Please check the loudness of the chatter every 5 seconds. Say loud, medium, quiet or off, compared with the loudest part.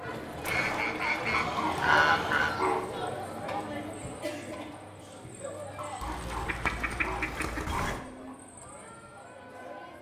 loud, medium.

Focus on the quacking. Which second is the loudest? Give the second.
2 s.